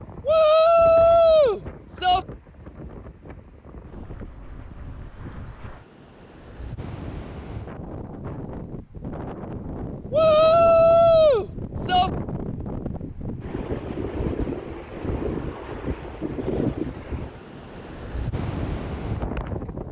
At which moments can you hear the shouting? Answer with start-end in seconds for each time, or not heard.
0.2-2.2, 10.1-12.1.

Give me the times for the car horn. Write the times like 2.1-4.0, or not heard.
not heard.